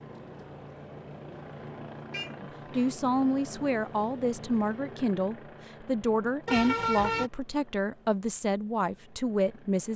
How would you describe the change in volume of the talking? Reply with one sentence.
The loudness of the talking stays about the same.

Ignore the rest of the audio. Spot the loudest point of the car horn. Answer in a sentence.
The volume of the car horn peaks at 7 seconds.